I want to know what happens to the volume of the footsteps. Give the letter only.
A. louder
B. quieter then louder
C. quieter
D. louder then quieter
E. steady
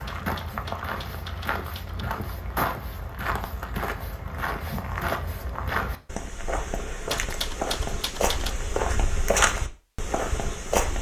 A.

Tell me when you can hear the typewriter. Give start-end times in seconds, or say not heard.
0.1-2.0, 7.0-8.6.